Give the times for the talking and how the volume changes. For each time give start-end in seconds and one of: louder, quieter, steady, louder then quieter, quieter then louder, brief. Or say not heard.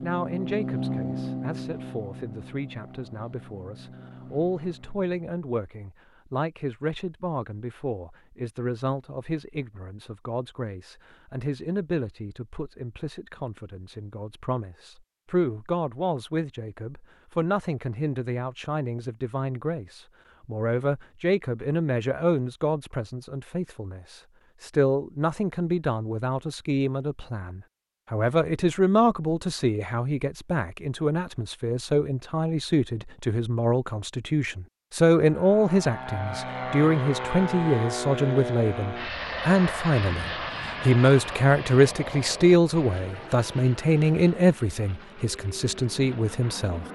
0.0-46.9 louder.